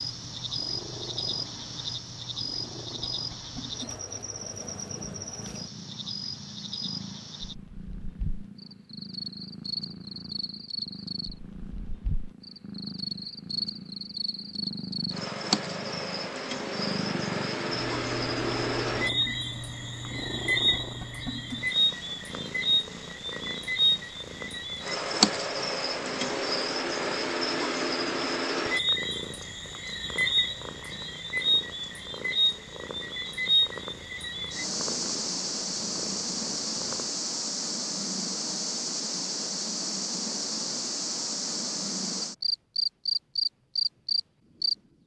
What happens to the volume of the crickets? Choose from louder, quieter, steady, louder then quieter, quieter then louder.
louder.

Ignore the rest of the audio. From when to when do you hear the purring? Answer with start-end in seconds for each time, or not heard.
0.0-37.2.